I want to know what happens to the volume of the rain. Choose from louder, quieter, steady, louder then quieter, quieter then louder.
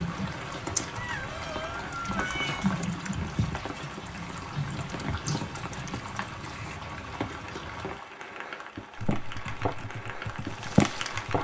louder.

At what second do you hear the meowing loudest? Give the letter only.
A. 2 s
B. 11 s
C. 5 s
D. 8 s
A.